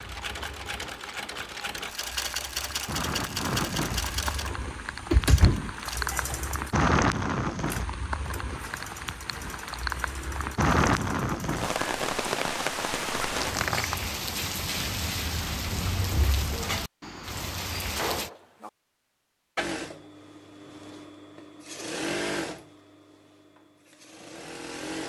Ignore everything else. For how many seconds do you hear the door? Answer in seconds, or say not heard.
2 s.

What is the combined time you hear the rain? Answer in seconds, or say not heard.
18 s.